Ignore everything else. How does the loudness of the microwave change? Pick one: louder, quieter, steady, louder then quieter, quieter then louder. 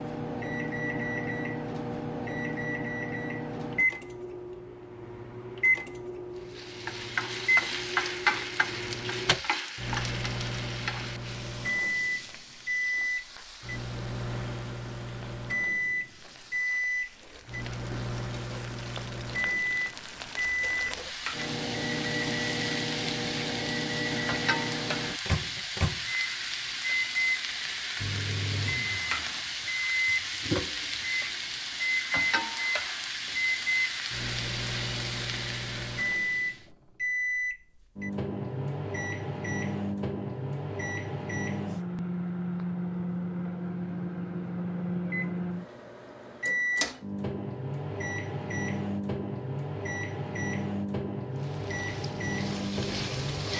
steady.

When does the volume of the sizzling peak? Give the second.
8 s.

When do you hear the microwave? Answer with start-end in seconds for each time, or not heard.
0.0-53.5.